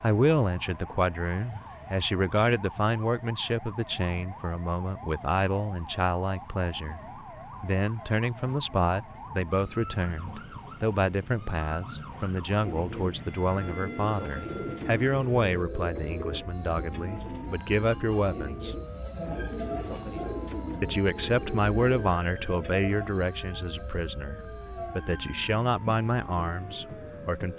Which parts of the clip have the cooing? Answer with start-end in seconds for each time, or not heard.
12.6-22.9.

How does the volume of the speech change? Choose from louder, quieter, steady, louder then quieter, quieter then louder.
steady.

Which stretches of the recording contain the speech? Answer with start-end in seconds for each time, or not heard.
0.0-7.0, 7.6-18.8, 20.8-27.5.